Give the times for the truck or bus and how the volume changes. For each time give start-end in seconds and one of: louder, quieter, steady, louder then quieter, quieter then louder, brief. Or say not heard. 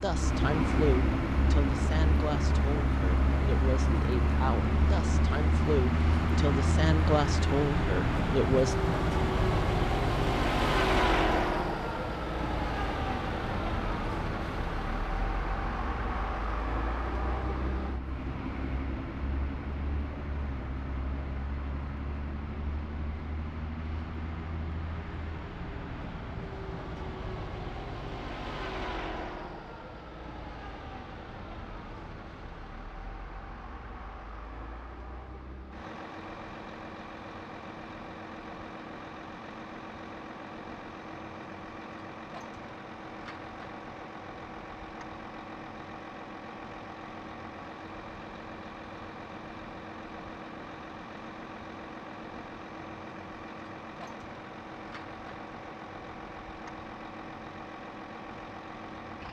0.0-59.2 quieter.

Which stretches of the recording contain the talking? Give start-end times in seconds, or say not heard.
0.0-8.8.